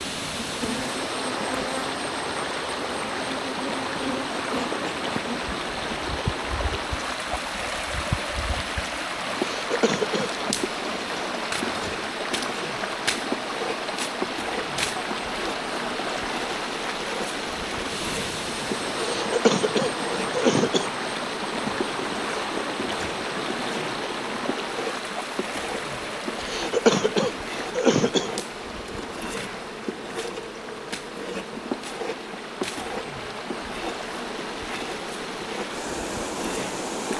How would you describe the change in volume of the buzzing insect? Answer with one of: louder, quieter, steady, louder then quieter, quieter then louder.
steady.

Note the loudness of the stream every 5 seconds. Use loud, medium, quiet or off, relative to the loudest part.
loud, loud, loud, loud, loud, medium, medium, loud.